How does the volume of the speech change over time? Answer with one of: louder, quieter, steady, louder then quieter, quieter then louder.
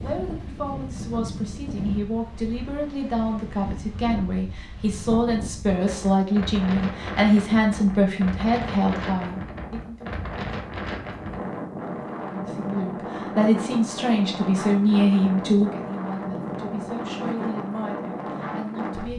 louder then quieter.